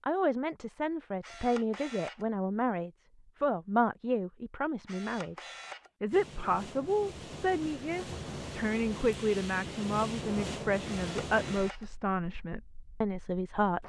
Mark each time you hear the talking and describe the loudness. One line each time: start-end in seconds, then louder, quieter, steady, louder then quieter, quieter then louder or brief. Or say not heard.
0.0-13.8 steady.